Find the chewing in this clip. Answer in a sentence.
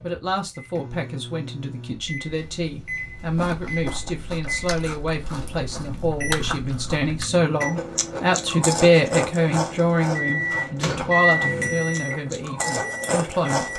You can hear the chewing from 3.2 to 13.7 s.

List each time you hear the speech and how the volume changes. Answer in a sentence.
You can hear the speech from 0.0 to 13.7 s, getting louder then quieter.